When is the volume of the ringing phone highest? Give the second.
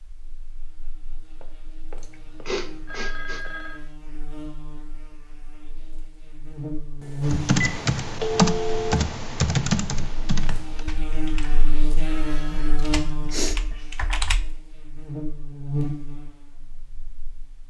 8 s.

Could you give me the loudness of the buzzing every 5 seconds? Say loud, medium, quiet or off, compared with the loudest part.
quiet, loud, loud, loud.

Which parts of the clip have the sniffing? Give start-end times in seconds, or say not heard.
2.0-3.4, 12.5-13.6.